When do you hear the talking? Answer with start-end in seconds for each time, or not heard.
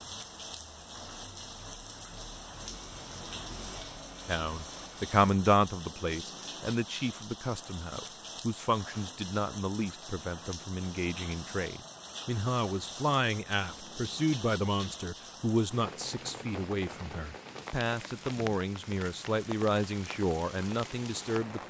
4.2-21.6.